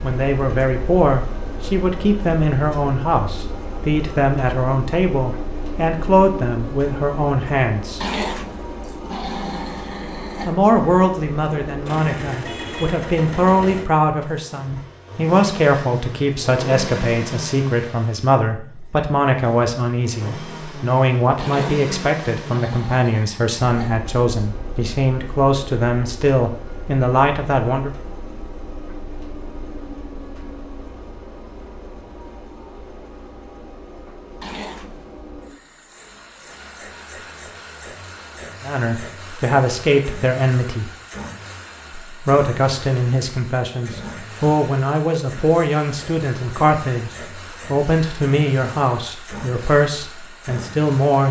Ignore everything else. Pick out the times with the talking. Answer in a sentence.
You can hear the talking from 0.0 to 8.0 s, from 10.4 to 27.9 s, from 38.6 to 40.9 s and from 42.0 to 51.2 s.